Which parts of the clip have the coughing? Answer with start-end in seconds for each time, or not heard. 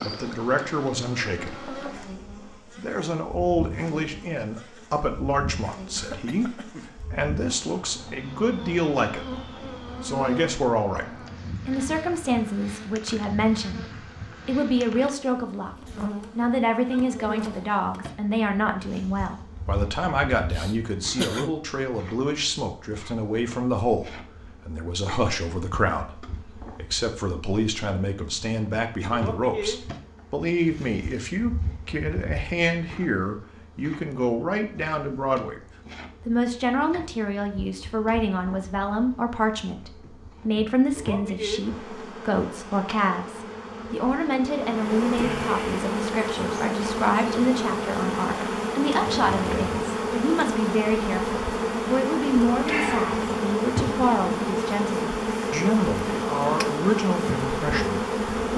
6.0-7.0, 20.4-21.6, 49.0-49.9.